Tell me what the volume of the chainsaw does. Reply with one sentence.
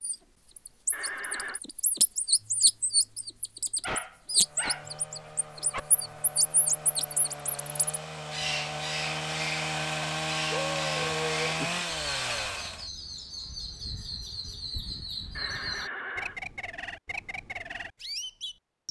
The volume of the chainsaw goes up.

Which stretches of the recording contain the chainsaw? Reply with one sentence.
The chainsaw can be heard from 4.2 to 12.9 s.